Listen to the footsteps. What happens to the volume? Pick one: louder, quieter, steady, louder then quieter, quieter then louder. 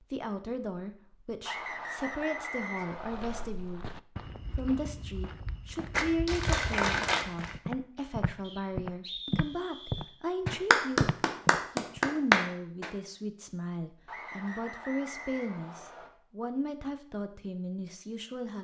louder.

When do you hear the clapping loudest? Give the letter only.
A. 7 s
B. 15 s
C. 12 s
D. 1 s
C.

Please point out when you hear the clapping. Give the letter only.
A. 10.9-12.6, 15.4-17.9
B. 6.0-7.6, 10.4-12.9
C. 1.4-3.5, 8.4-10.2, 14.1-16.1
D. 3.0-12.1
B.